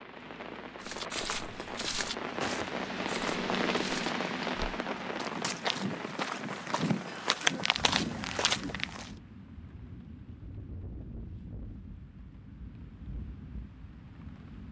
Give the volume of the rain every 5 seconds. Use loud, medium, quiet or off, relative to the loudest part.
loud, medium, quiet.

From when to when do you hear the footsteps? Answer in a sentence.
You can hear the footsteps from 0.8 to 9.2 s.